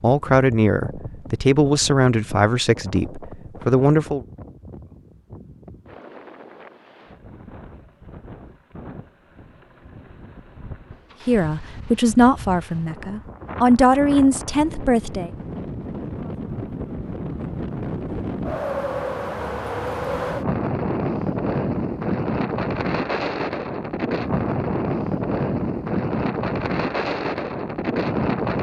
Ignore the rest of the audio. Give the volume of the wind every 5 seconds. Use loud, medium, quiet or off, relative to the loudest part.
quiet, quiet, quiet, medium, loud, loud.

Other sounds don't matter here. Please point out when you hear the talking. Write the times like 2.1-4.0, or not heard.
0.0-4.2, 11.2-15.3.